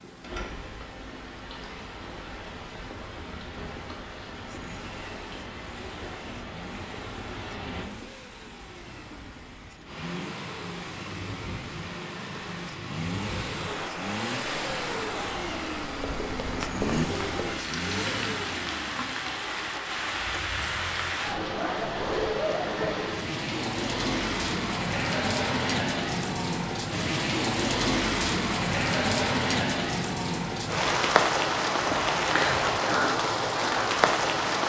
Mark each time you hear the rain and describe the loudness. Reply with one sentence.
The rain can be heard from 0.0 to 34.6 s, getting louder.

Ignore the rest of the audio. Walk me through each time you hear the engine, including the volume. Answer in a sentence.
The engine can be heard from 0.0 to 21.2 s, getting louder.